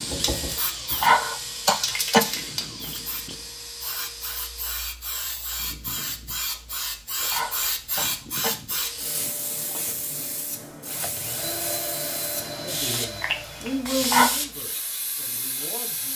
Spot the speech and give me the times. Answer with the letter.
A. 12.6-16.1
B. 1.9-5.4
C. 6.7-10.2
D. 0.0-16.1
A.